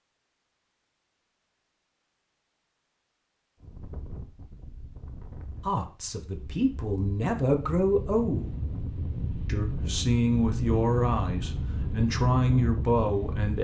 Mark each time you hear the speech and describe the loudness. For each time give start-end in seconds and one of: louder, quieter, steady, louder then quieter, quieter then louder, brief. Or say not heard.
5.7-8.6 brief
9.4-13.5 quieter then louder.